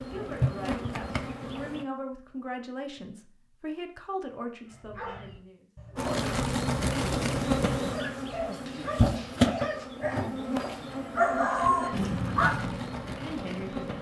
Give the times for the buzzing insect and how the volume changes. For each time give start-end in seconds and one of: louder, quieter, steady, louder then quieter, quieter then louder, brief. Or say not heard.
0.0-1.9 brief
6.0-13.9 quieter.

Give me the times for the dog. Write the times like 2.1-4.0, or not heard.
4.7-12.8.